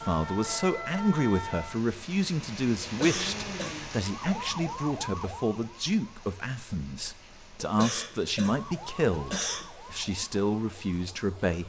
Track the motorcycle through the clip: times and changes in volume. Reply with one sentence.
The motorcycle can't be heard in this clip.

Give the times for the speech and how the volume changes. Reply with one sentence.
You can hear the speech from 0.0 to 11.6 s, at a steady volume.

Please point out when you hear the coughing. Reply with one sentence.
You can hear the coughing from 2.8 to 3.8 s and from 7.6 to 9.7 s.